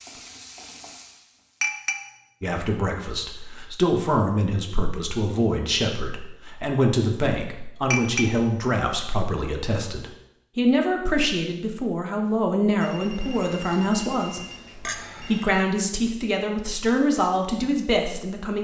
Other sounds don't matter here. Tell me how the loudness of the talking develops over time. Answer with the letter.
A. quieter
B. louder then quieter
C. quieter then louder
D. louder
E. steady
E.